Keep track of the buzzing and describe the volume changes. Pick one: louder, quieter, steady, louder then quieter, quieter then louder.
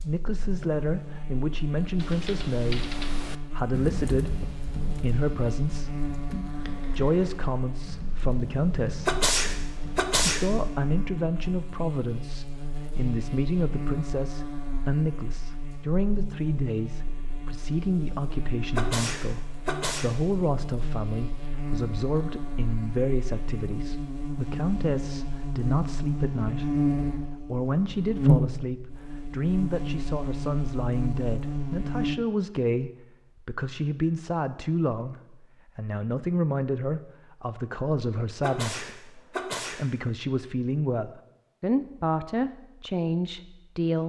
louder.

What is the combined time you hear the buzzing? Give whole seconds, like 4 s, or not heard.
32 s.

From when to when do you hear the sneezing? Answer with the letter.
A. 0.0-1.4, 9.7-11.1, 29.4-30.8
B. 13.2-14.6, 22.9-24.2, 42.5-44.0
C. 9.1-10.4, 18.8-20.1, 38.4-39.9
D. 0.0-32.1
C.